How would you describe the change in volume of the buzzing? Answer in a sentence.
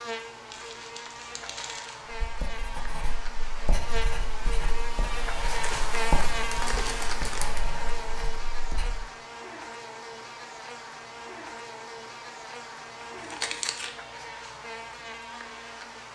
The loudness of the buzzing goes up, then down.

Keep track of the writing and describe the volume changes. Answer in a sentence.
The volume of the writing goes up, then down.